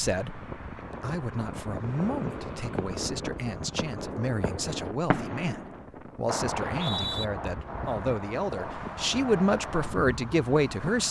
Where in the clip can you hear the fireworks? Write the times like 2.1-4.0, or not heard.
2.0-9.9.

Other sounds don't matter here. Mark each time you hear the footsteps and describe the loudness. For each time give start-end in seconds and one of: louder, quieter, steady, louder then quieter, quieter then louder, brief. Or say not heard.
not heard.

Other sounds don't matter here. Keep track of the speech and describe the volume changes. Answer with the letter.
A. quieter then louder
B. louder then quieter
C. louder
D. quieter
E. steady
C.